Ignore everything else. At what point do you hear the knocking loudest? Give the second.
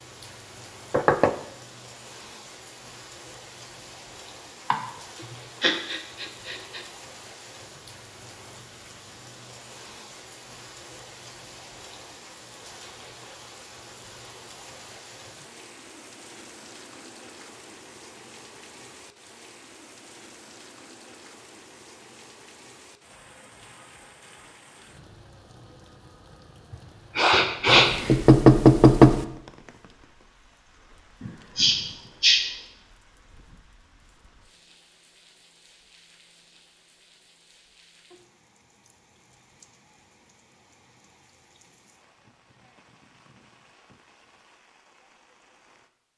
29 s.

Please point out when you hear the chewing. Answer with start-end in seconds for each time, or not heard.
not heard.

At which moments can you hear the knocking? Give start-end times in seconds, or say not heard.
0.9-1.3, 27.6-29.2.